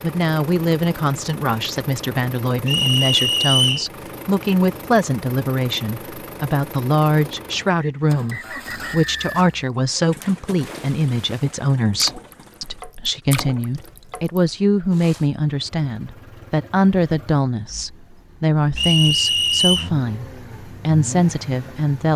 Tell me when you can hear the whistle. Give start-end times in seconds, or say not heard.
2.6-3.9, 7.8-9.4, 18.8-19.9.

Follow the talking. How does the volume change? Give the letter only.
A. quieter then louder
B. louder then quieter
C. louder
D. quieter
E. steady
E.